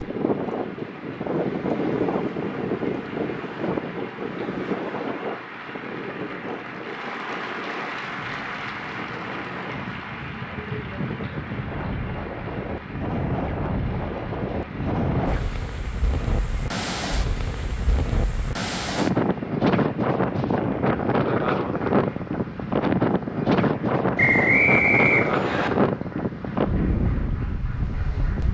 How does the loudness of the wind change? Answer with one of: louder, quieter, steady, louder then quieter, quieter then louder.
quieter then louder.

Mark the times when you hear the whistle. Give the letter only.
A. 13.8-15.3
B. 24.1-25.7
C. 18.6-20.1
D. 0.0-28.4
B.